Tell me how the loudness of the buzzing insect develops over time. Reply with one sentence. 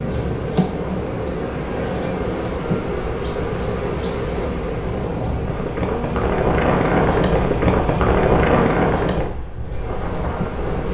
The loudness of the buzzing insect goes down, then up.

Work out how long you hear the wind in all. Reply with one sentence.
The wind can be heard for 11 seconds in total.